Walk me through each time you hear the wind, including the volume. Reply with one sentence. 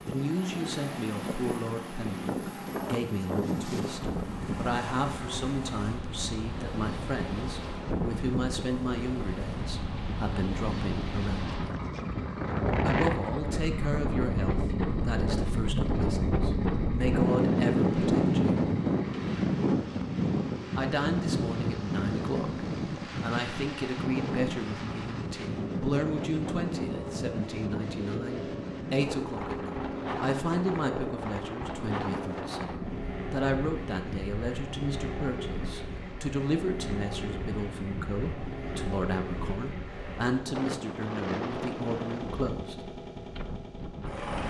You can hear the wind from 0.0 to 44.4 s, getting louder then quieter.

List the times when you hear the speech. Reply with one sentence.
The speech can be heard from 0.1 to 11.8 s, from 12.8 to 18.6 s and from 20.8 to 42.8 s.